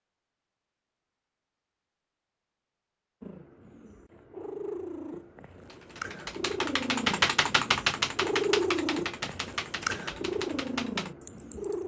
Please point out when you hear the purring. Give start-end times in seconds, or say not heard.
3.2-11.8.